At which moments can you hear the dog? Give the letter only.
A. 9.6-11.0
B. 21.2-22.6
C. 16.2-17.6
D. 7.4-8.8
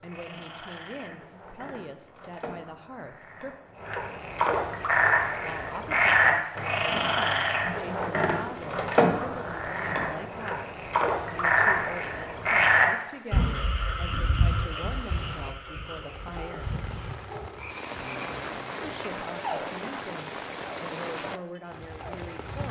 C.